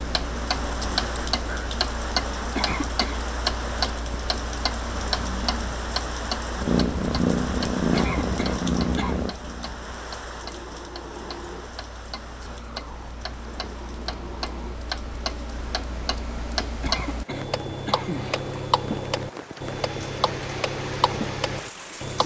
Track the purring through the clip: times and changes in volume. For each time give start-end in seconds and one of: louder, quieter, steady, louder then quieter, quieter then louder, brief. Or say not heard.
6.5-14.8 quieter.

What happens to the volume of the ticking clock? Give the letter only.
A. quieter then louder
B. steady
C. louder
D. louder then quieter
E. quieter
A.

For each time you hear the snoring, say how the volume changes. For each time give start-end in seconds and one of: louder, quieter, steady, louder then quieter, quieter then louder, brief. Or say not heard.
not heard.